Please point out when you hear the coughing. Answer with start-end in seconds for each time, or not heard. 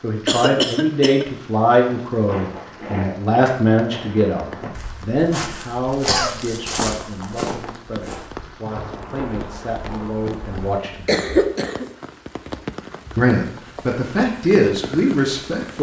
0.2-1.2, 6.0-6.6, 11.1-11.9.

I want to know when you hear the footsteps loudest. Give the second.
7 s.